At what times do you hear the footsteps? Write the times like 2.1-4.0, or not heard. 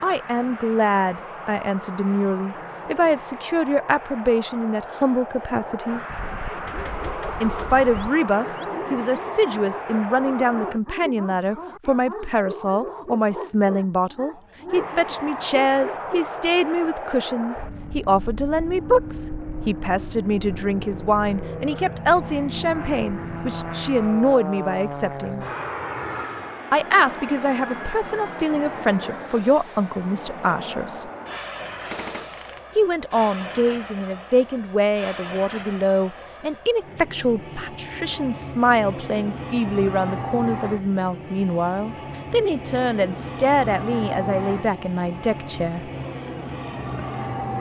not heard.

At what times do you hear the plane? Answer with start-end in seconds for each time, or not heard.
0.0-10.8, 14.7-47.5.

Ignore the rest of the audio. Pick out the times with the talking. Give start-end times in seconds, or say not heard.
0.0-6.0, 7.4-25.4, 26.7-31.1, 32.8-45.9.